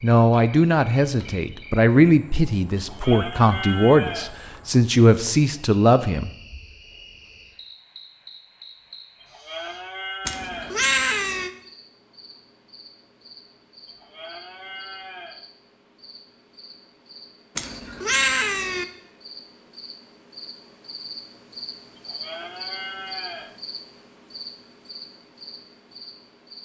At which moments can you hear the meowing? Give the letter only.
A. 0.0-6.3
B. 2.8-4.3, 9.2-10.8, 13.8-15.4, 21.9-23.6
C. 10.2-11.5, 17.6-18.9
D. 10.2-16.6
C.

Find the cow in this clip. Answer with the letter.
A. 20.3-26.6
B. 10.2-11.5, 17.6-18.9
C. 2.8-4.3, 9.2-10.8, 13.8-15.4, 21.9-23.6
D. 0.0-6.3
C.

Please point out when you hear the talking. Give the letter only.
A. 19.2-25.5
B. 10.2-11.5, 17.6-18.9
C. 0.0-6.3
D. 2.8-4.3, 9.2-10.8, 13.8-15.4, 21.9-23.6
C.